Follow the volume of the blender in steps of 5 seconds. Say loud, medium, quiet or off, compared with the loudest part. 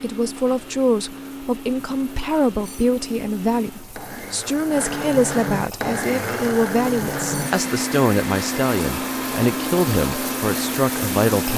medium, loud, loud.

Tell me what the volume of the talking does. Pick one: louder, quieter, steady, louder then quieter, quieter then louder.
steady.